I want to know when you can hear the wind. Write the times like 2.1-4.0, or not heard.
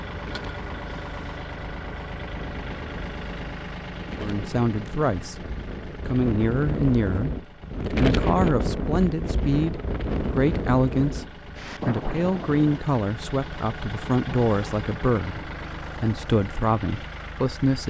0.0-12.8.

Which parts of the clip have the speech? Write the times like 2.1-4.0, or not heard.
4.2-17.8.